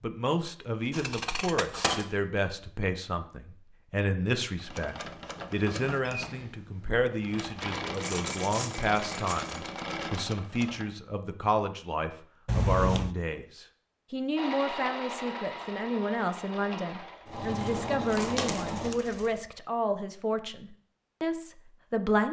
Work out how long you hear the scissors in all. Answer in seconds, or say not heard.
2 s.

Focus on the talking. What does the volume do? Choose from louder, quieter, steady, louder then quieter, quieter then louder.
steady.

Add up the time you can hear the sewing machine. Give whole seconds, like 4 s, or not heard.
11 s.